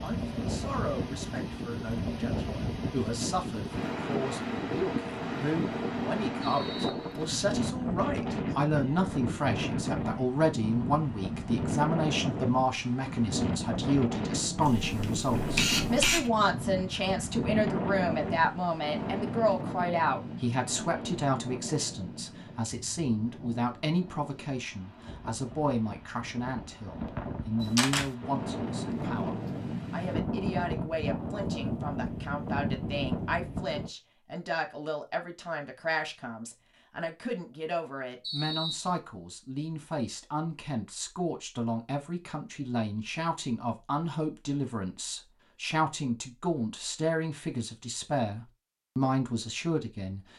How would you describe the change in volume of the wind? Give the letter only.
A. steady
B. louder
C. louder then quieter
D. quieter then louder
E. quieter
D.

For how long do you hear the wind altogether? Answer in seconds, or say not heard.
34 s.